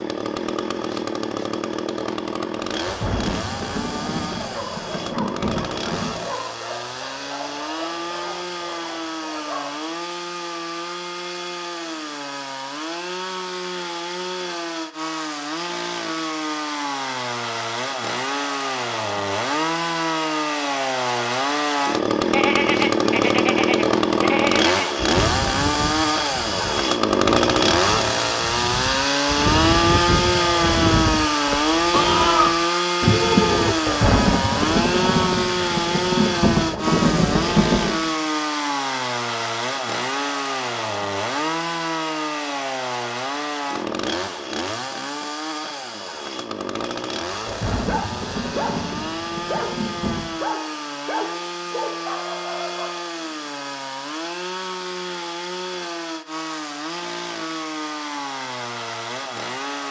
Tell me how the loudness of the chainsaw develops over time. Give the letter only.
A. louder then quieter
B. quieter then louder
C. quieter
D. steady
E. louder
A.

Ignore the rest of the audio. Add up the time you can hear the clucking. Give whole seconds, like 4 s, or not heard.
not heard.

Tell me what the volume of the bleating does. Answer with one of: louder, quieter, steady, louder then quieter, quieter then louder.
quieter then louder.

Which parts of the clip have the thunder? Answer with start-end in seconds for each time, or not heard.
2.8-6.2, 33.7-38.0, 47.3-50.2.